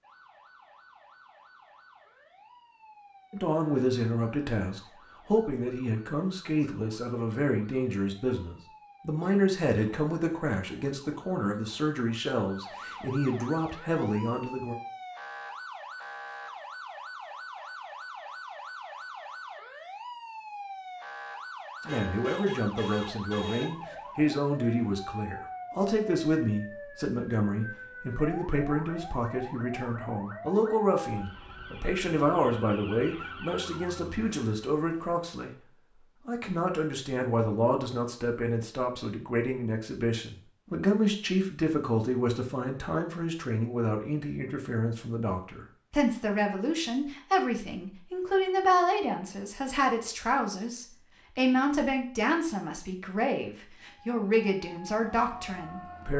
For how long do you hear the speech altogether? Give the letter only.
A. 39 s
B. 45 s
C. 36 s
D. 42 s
B.